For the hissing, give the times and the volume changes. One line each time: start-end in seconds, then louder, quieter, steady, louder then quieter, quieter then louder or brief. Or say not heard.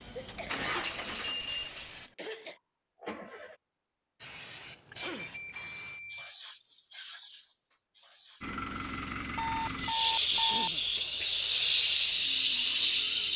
0.0-2.1 brief
4.2-13.3 quieter then louder.